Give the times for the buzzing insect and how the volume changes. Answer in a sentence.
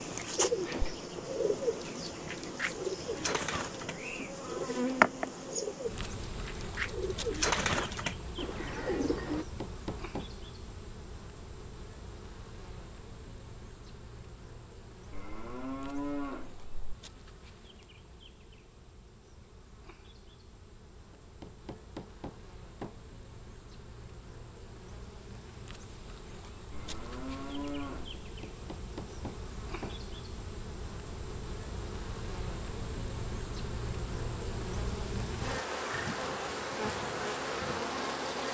You can hear the buzzing insect from 0.0 to 38.4 s, getting quieter then louder.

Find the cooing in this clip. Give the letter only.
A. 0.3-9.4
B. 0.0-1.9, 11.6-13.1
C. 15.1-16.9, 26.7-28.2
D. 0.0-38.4
A.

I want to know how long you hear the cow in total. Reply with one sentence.
You can hear the cow for 3 seconds altogether.